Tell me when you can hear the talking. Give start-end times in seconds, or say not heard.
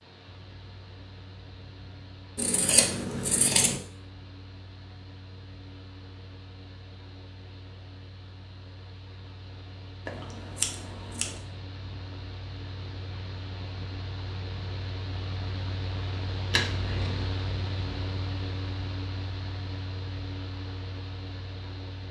not heard.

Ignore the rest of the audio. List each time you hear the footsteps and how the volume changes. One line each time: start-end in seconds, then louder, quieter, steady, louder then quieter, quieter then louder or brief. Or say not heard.
not heard.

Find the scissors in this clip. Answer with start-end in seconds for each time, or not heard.
2.4-3.8, 10.1-11.4, 16.5-17.2.